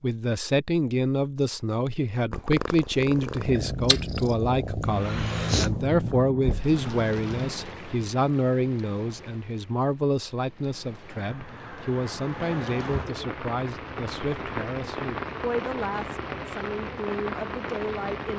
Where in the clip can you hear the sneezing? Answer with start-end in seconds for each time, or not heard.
not heard.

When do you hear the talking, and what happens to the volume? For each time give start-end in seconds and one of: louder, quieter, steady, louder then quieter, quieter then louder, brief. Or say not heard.
0.0-18.3 quieter.